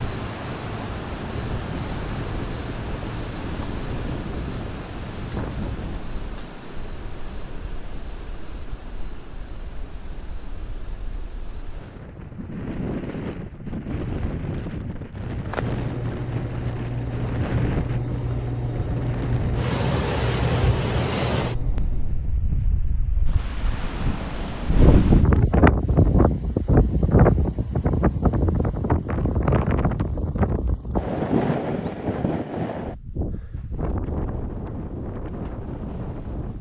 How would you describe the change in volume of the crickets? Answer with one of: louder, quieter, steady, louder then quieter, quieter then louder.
quieter then louder.